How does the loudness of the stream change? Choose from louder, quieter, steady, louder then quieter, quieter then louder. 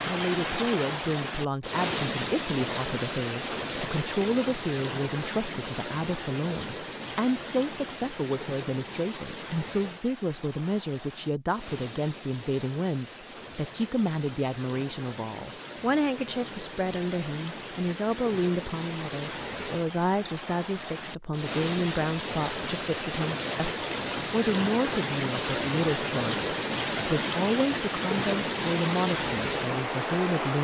quieter then louder.